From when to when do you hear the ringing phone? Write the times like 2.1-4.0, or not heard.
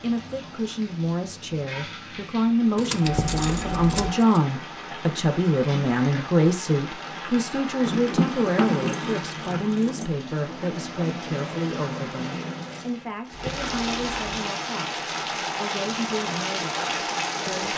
3.0-4.2, 13.3-14.4.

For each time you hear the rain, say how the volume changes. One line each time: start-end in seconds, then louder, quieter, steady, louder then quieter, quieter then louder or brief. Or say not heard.
0.0-17.7 louder.